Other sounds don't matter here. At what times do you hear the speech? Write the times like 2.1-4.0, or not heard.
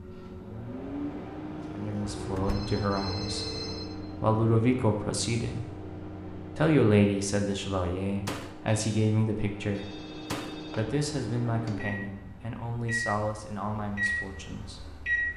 1.7-14.8.